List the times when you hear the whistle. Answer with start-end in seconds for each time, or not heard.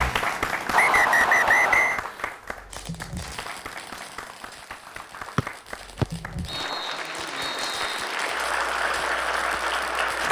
0.7-2.0, 5.3-8.1.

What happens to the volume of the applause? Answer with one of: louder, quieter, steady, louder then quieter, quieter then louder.
quieter then louder.